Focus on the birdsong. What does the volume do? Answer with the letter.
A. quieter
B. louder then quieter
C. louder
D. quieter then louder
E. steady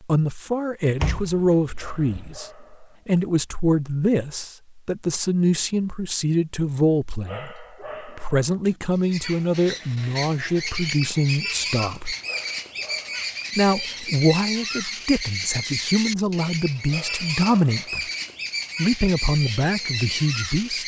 E.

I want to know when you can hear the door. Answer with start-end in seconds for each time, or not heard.
1.0-2.4.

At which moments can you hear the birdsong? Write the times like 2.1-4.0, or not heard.
8.9-20.8.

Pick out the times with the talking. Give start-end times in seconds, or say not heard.
0.0-12.2, 13.6-18.1, 18.8-20.8.